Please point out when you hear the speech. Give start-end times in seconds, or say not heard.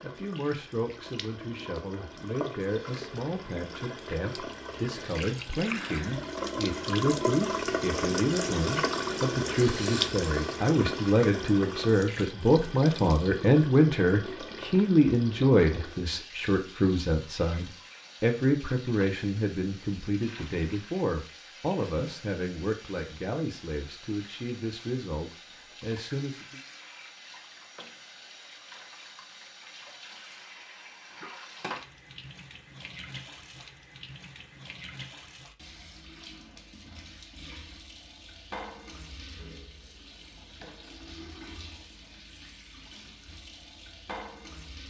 0.0-26.6.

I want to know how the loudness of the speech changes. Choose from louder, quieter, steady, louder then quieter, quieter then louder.
louder then quieter.